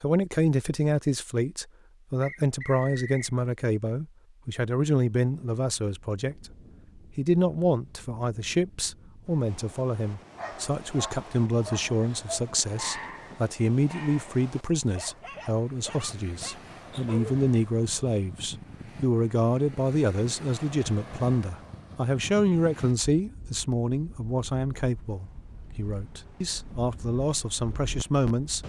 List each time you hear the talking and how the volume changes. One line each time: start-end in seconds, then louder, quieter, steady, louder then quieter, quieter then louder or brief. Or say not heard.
0.0-28.6 steady.